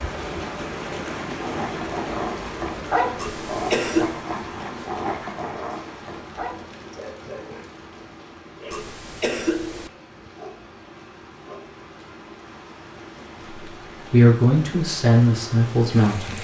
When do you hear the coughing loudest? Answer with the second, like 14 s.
4 s.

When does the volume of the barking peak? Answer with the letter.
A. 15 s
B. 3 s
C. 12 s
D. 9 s
B.